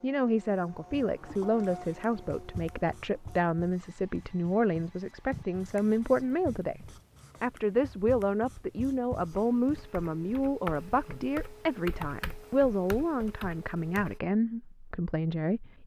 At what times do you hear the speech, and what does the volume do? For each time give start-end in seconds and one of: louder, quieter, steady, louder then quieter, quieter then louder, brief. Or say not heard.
0.0-15.8 steady.